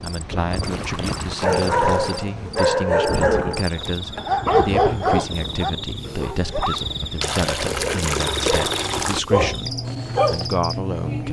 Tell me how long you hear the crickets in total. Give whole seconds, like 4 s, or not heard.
11 s.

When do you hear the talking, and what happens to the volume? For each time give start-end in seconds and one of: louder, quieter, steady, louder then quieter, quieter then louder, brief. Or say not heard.
0.0-11.2 steady.